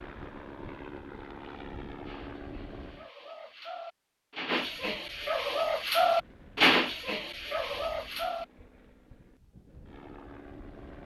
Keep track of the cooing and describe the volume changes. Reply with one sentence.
The loudness of the cooing goes up, then down.